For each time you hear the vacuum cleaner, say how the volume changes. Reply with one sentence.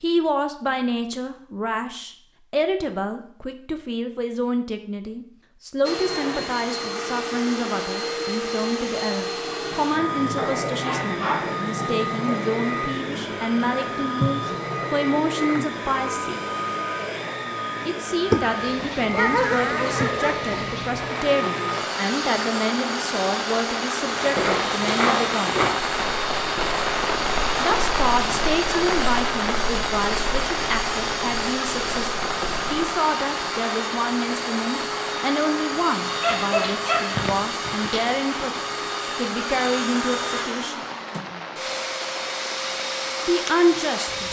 The vacuum cleaner can be heard from 5.8 to 44.2 s, at a steady volume.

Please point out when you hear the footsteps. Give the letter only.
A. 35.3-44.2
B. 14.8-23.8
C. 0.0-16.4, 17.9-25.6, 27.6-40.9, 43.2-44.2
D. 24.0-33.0
D.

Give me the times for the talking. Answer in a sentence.
The talking can be heard from 0.0 to 16.4 s, from 17.9 to 25.6 s, from 27.6 to 40.9 s and from 43.2 to 44.2 s.